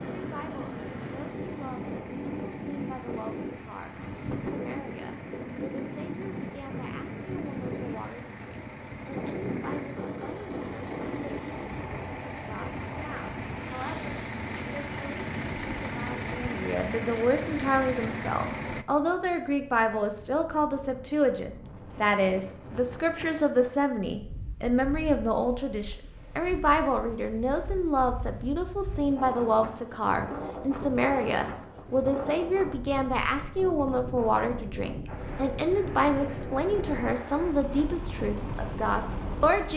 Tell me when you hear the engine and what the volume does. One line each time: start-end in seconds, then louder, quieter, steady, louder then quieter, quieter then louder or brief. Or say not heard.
0.0-18.9 louder
35.0-39.7 steady.